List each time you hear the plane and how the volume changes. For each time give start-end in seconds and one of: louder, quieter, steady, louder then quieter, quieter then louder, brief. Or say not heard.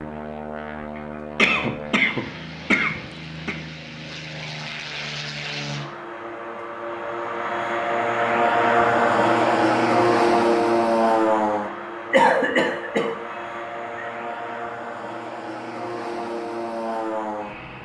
0.0-17.7 louder then quieter.